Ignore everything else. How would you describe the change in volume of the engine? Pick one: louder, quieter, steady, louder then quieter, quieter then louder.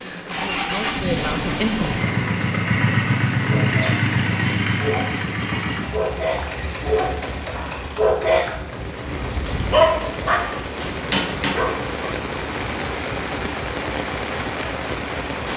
quieter.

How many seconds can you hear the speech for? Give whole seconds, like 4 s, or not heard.
2 s.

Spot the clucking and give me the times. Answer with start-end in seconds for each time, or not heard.
not heard.